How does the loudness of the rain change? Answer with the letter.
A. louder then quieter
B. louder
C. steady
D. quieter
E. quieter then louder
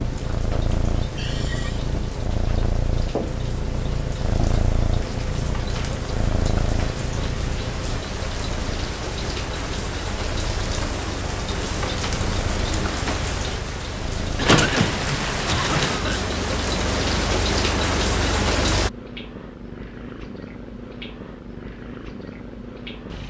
B.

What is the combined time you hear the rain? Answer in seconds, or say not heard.
19 s.